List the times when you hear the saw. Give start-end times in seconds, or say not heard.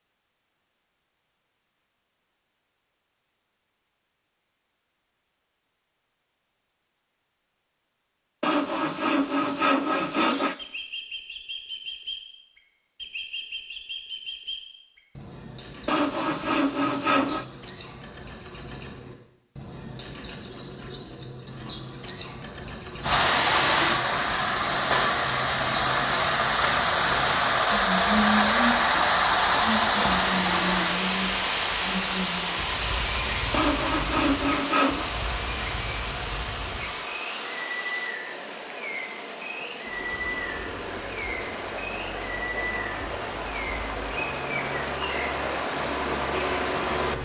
8.4-10.6, 15.8-17.4, 33.5-35.1.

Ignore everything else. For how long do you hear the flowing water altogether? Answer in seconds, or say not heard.
24 s.